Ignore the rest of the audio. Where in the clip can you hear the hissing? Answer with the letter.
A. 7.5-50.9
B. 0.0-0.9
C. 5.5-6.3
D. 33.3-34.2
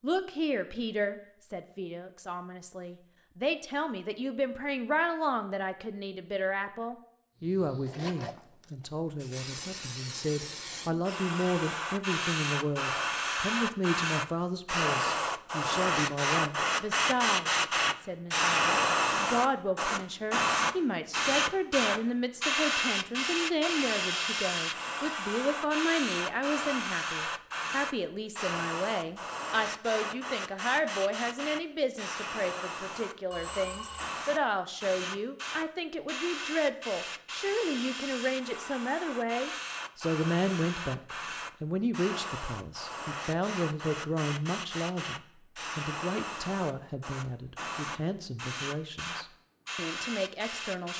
A.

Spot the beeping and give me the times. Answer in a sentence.
You can hear the beeping from 33.3 to 34.2 s.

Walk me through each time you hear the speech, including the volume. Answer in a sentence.
The speech can be heard from 0.0 to 50.9 s, at a steady volume.